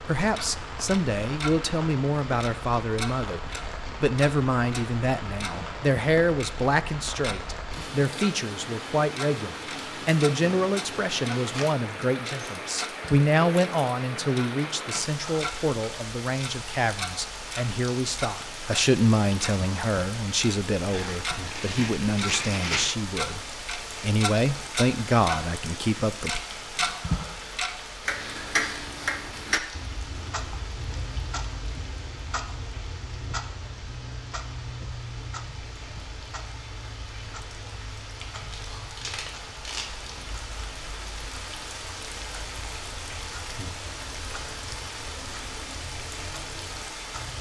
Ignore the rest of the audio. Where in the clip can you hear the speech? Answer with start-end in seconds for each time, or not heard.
0.0-26.4.